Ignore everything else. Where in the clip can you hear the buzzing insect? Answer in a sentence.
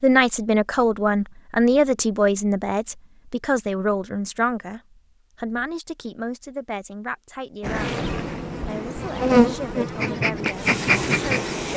You can hear the buzzing insect from 7.6 to 11.7 s.